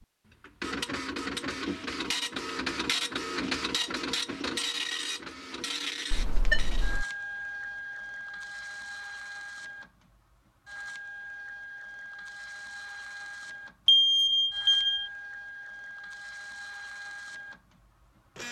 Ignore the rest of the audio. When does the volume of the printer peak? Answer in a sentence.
The volume of the printer peaks at 3 seconds.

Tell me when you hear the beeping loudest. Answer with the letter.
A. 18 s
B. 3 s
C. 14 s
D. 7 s
C.